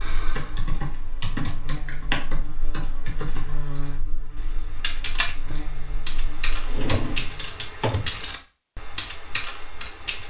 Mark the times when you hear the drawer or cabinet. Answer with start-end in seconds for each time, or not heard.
6.7-8.2.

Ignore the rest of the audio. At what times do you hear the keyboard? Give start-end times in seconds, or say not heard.
0.0-10.2.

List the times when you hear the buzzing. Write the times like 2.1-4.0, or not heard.
0.0-7.5.